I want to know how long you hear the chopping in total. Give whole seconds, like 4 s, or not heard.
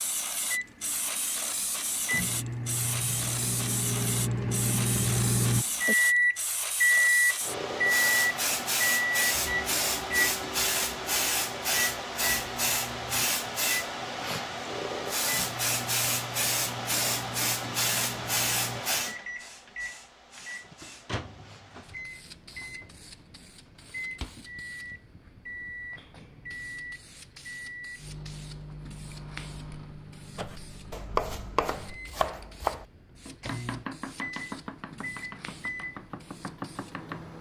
7 s.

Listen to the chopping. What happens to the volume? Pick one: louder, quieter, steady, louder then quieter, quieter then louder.
quieter.